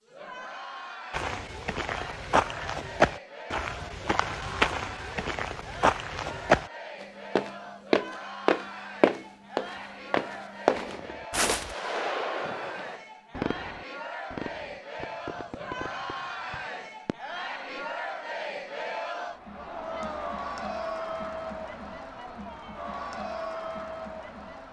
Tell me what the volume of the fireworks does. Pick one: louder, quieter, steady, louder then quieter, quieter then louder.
quieter.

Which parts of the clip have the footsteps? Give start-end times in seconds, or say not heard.
1.1-6.7, 7.3-11.8.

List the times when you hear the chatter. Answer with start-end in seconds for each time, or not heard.
0.0-24.6.